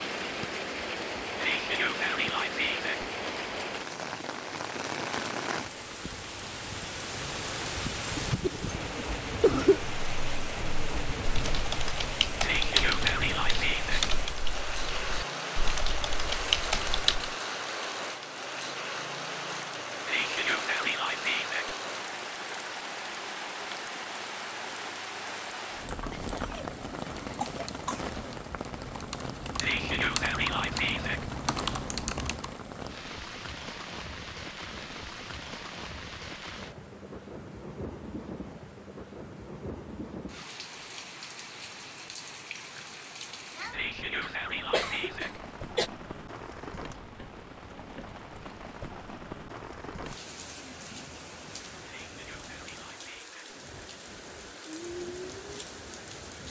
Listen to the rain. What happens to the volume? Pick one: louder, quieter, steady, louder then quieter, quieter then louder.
quieter.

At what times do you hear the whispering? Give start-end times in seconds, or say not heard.
1.4-3.0, 12.4-14.1, 20.1-21.8, 29.6-31.3, 43.7-45.4, 51.9-53.5.